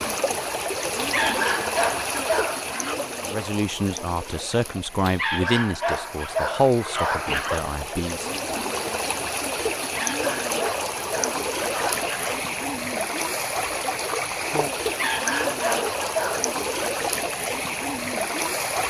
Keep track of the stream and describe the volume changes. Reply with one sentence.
The loudness of the stream goes down, then up.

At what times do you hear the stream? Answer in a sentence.
The stream can be heard from 0.0 to 18.8 s.